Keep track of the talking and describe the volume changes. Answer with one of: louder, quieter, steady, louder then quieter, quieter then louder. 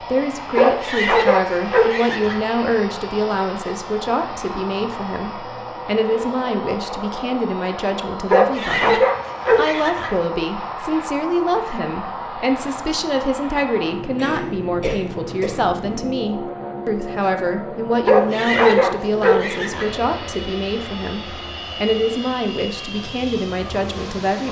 steady.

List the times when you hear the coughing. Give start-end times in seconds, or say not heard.
14.2-16.1.